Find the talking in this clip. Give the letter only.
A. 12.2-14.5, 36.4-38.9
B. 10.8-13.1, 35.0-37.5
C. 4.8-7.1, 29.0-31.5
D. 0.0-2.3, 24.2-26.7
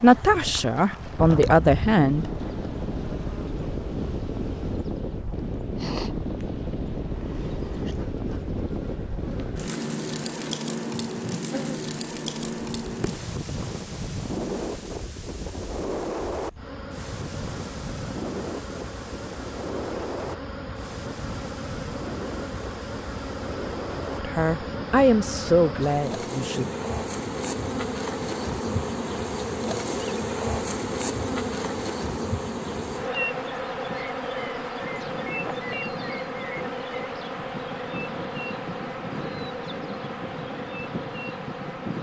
D.